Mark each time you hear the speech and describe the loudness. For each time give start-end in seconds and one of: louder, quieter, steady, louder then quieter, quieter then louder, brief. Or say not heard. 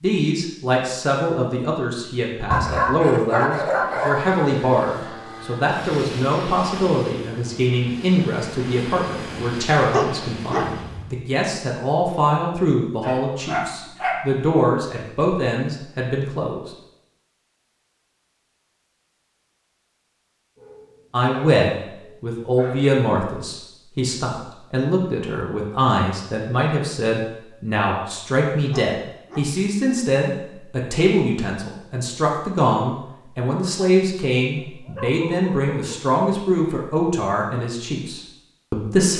0.0-16.7 steady
21.1-39.1 steady.